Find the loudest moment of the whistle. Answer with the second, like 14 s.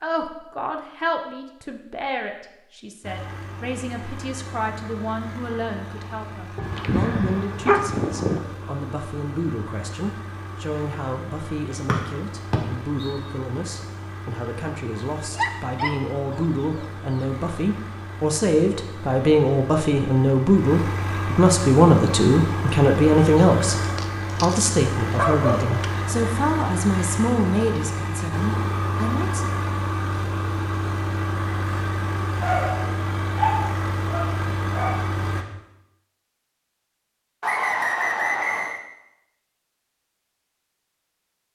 38 s.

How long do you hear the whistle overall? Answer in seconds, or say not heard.
3 s.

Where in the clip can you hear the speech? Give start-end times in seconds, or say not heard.
0.0-23.8, 24.4-29.5.